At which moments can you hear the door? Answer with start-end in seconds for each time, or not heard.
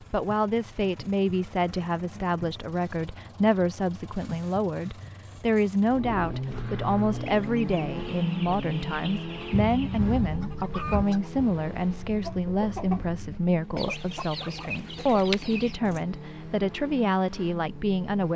not heard.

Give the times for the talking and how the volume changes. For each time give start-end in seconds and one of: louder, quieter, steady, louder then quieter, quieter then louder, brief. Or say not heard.
0.1-18.3 steady.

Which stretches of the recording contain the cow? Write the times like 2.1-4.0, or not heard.
not heard.